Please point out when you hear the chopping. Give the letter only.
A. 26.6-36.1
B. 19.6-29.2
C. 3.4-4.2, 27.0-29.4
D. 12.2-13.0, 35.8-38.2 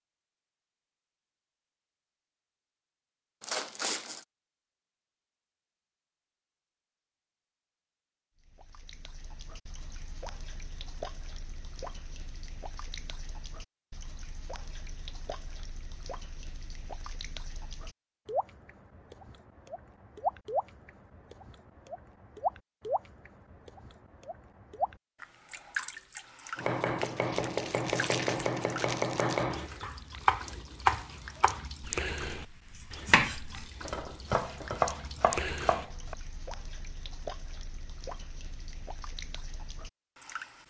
A.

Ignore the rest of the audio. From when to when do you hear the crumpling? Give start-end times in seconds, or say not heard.
3.4-4.2, 27.0-29.4.